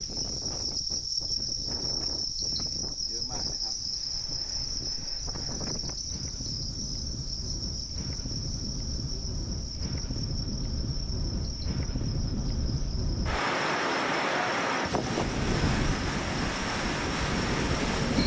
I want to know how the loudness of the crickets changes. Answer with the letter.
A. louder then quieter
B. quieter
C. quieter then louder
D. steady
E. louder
B.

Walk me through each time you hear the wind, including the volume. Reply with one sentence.
The wind can be heard from 0.0 to 18.2 s, getting louder.